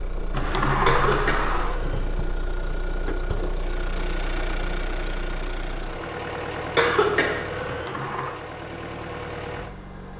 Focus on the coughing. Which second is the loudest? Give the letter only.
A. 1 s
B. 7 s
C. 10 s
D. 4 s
B.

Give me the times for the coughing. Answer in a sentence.
The coughing can be heard from 0.8 to 2.0 s and from 6.8 to 7.9 s.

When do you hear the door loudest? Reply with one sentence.
The volume of the door peaks at 1 second.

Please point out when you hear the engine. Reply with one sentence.
The engine can be heard from 0.0 to 10.1 s.